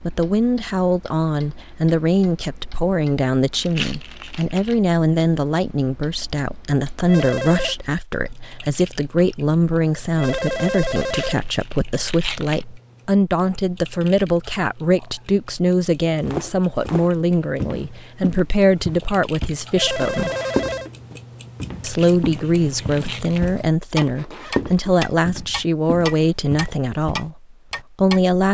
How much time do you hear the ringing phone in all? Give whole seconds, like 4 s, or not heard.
3 s.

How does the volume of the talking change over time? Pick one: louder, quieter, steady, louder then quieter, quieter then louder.
steady.